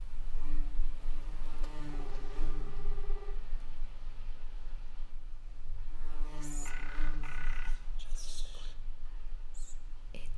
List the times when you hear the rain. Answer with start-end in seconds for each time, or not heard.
0.0-10.3.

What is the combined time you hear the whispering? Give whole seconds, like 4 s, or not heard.
4 s.